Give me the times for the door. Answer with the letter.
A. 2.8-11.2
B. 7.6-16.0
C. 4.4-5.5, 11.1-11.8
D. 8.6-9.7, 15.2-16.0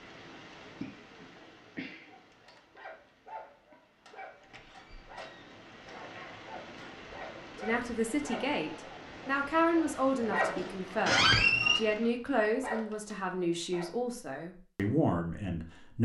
C.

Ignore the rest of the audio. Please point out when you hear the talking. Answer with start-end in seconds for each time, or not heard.
7.6-16.0.